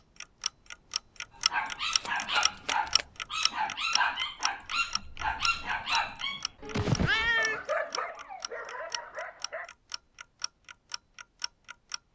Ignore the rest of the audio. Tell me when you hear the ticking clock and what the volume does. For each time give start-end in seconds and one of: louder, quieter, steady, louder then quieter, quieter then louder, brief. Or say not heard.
0.2-12.1 quieter.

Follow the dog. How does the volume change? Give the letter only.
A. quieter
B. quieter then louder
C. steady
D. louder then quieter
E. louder
A.